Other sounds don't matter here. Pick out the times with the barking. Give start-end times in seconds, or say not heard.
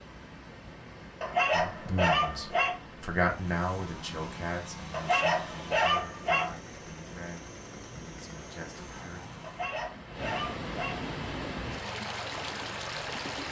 1.2-2.8, 4.9-6.5, 9.4-11.0.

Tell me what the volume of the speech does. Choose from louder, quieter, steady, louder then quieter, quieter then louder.
quieter.